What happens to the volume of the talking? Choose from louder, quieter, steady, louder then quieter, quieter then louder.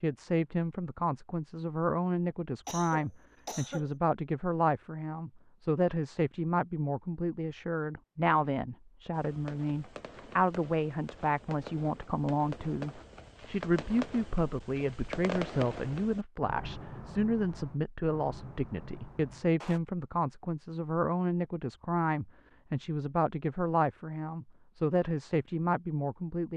steady.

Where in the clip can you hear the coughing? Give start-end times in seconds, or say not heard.
2.6-3.9.